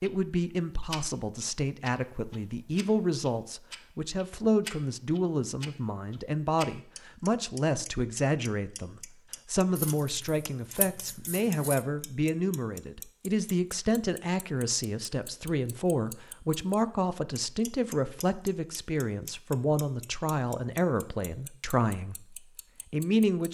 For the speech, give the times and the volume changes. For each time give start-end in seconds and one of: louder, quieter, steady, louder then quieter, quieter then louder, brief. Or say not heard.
0.0-23.4 steady.